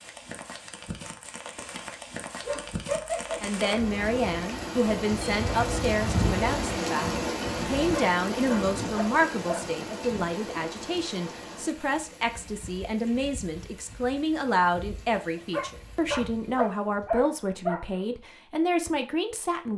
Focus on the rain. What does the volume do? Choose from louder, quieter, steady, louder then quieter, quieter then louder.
louder then quieter.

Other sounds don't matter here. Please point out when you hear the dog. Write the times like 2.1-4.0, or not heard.
2.4-3.6, 8.0-9.7, 15.3-17.9.